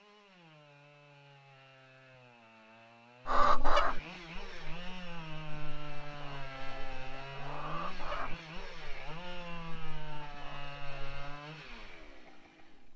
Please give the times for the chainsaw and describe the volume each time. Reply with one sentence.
The chainsaw can be heard from 0.0 to 12.9 s, getting louder.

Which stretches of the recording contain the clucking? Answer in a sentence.
The clucking can be heard from 3.2 to 11.4 s.